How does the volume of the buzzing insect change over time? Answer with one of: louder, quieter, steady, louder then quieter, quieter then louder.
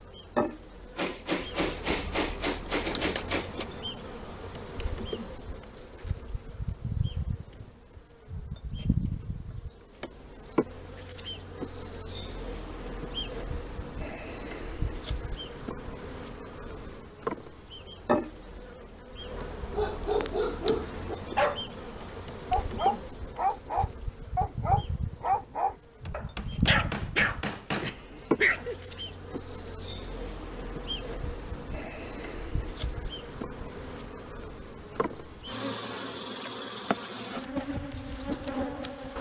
steady.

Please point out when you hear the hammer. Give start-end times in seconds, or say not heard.
0.9-3.6, 26.1-28.0.